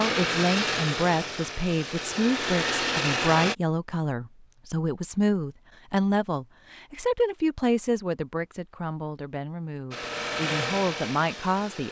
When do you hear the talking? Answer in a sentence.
The talking can be heard from 0.0 to 11.8 s.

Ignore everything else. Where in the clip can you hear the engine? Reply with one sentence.
The engine can be heard from 0.0 to 3.5 s and from 9.9 to 11.8 s.